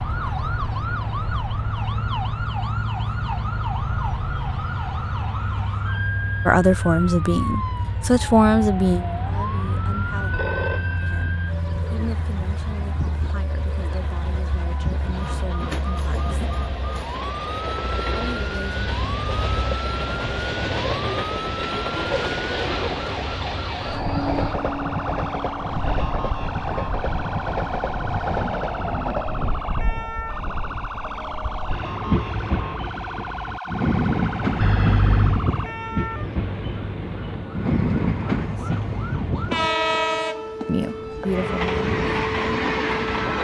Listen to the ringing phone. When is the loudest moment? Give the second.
35 s.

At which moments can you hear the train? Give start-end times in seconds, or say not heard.
0.0-43.4.